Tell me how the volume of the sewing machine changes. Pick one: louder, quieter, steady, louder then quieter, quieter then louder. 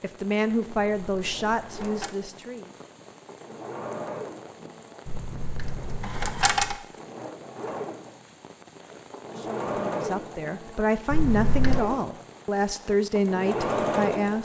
louder.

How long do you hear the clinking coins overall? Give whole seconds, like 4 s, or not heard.
4 s.